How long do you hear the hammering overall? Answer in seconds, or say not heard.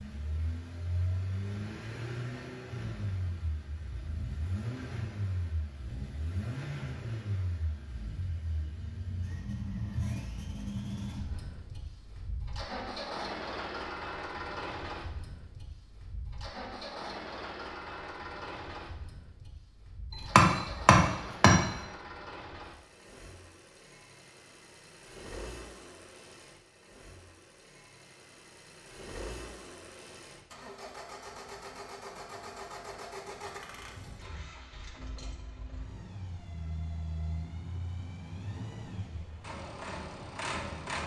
2 s.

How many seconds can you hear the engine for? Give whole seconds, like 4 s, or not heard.
41 s.